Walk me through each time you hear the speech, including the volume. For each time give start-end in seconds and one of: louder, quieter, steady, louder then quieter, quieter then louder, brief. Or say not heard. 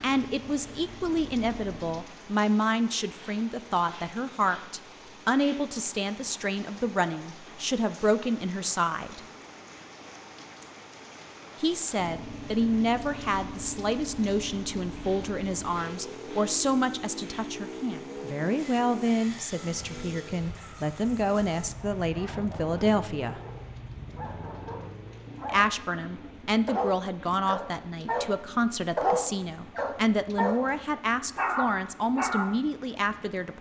0.0-9.2 steady
11.6-23.4 steady
25.4-33.5 steady.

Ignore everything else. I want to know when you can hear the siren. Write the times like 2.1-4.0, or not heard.
not heard.